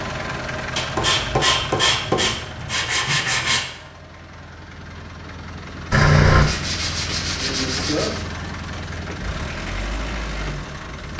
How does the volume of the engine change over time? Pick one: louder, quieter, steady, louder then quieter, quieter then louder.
quieter then louder.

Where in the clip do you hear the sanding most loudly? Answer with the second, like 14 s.
6 s.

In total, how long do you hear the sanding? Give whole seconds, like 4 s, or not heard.
5 s.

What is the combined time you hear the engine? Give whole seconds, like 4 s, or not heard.
11 s.